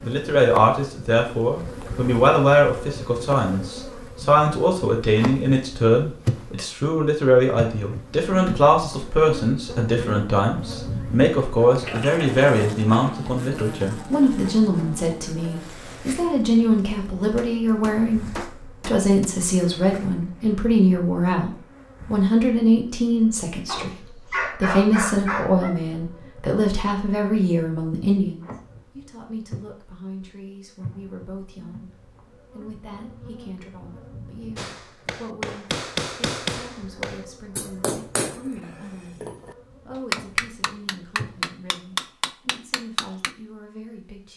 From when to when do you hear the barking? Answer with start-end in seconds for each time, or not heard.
11.7-13.2, 23.6-25.7.